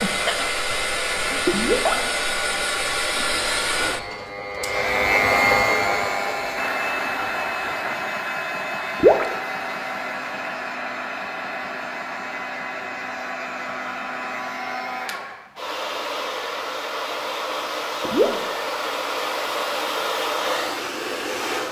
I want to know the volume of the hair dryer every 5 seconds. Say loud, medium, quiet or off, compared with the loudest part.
loud, loud, medium, loud, loud.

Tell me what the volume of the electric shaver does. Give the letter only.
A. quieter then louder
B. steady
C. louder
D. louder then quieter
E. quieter
D.